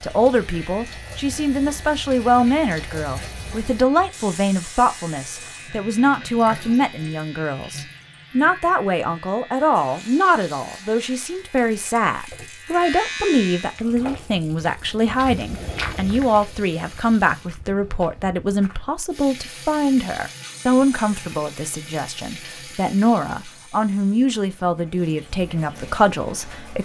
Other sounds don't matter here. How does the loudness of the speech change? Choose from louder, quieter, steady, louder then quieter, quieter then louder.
steady.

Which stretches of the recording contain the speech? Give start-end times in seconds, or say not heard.
0.0-26.8.